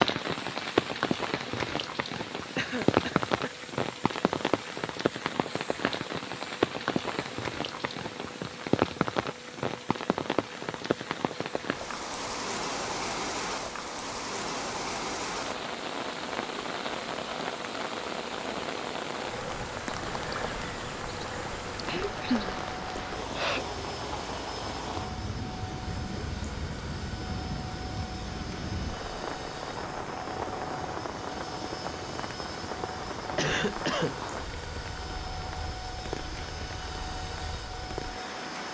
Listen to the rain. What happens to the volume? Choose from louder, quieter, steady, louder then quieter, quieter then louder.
quieter.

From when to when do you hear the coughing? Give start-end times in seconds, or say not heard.
2.5-3.5, 21.9-23.6, 33.4-34.2.